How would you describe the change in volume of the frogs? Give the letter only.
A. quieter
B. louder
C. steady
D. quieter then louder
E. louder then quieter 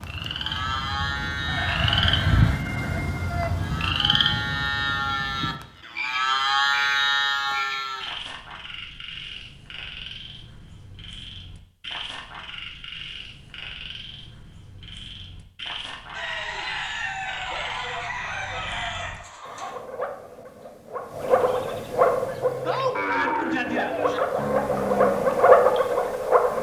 D.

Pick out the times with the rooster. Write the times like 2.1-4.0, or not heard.
1.4-3.5, 16.1-19.8.